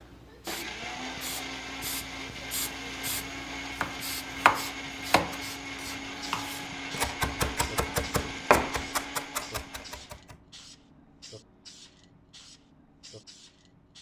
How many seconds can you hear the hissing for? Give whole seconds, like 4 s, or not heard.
14 s.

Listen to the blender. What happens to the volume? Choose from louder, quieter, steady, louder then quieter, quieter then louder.
steady.